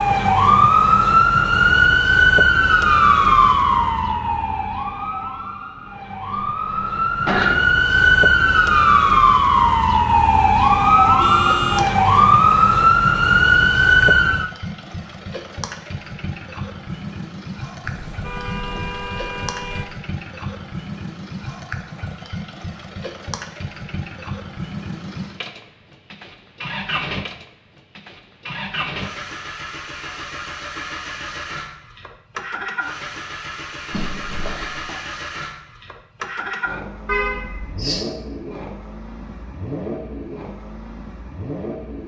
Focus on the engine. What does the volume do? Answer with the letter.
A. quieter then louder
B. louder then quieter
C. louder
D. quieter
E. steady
E.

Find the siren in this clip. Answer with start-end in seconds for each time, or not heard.
0.0-14.5.